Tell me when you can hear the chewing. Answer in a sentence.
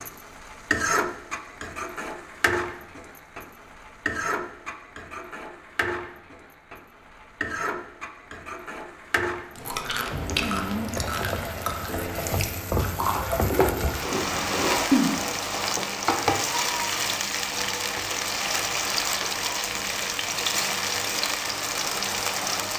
The chewing can be heard from 9.7 to 15.2 s.